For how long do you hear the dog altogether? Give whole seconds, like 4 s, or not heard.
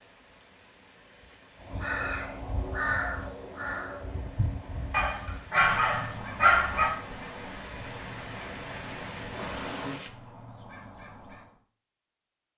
2 s.